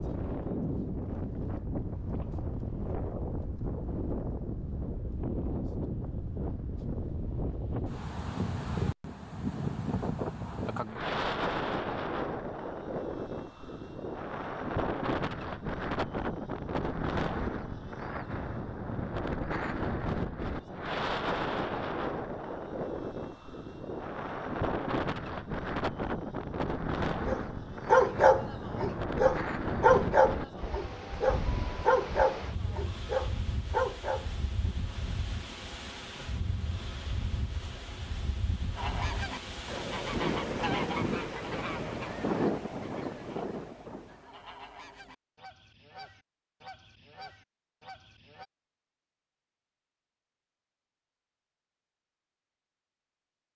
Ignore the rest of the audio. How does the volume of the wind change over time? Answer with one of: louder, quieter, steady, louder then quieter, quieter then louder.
steady.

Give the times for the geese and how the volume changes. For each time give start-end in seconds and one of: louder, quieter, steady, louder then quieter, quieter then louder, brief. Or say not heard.
38.8-48.5 quieter.